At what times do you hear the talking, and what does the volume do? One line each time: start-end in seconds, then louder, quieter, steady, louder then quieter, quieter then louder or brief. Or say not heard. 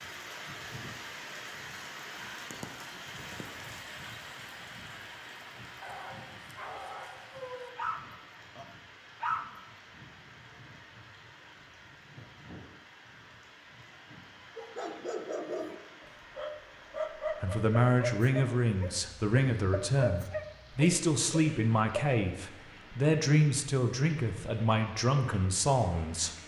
17.4-26.4 steady.